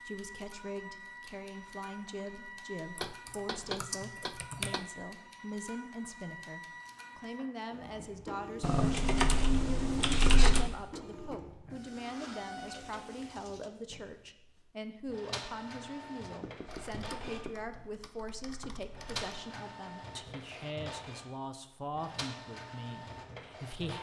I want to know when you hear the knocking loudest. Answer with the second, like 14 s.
4 s.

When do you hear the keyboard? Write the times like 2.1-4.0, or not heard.
3.0-4.8, 8.6-10.7, 16.6-19.2.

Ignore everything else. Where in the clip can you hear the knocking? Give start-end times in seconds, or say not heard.
3.0-4.9, 16.4-17.6.